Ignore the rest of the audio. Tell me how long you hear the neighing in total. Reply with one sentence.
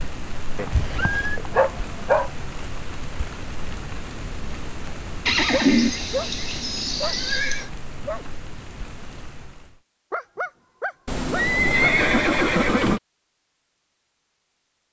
You can hear the neighing for 5 seconds altogether.